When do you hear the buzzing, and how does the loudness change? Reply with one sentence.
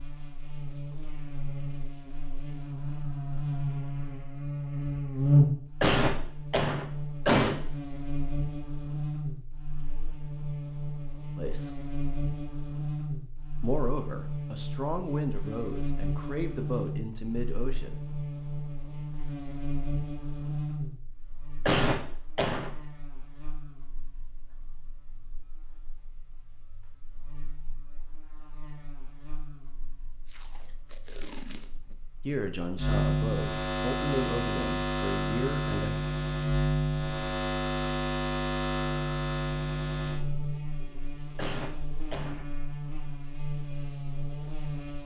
You can hear the buzzing from 0.0 to 45.0 s, getting quieter then louder.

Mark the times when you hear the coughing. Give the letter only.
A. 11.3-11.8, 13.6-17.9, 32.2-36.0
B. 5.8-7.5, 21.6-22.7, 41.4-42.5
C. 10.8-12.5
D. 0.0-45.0
B.